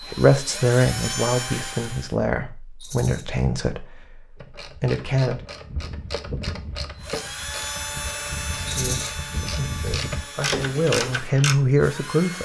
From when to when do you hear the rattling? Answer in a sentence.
You can hear the rattling from 2.8 to 3.2 s and from 8.7 to 9.1 s.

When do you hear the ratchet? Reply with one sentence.
The ratchet can be heard from 4.3 to 11.6 s.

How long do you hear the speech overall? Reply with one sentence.
The speech can be heard for 9 seconds in total.